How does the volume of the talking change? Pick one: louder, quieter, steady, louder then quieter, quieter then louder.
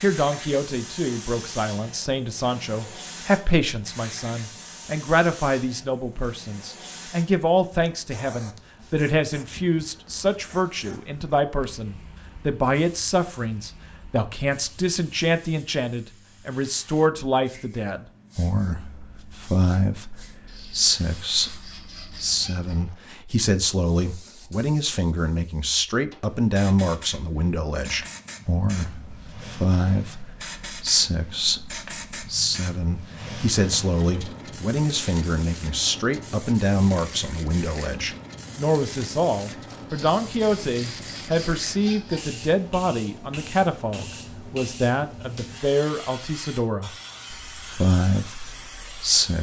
steady.